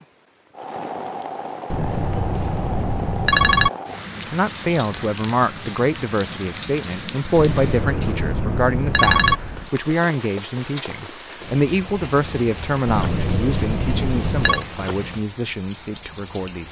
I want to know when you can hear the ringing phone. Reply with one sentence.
The ringing phone can be heard from 1.7 to 3.7 s, from 7.3 to 9.4 s and from 12.8 to 14.7 s.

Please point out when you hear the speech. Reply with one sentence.
The speech can be heard from 4.2 to 16.6 s.